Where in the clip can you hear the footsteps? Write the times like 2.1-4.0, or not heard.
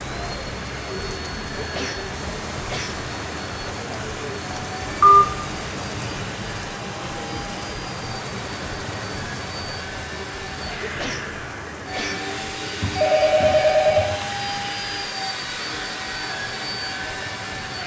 not heard.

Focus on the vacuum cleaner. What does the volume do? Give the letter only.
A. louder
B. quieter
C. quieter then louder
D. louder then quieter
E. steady
A.